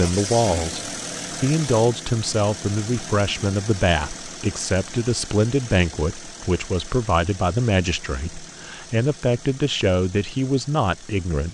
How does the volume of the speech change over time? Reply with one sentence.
The volume of the speech stays about the same.